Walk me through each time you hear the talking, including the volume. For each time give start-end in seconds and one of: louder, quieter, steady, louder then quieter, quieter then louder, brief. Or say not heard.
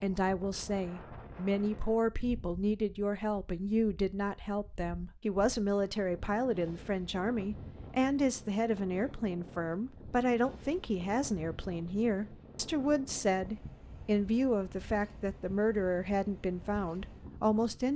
0.0-17.9 steady.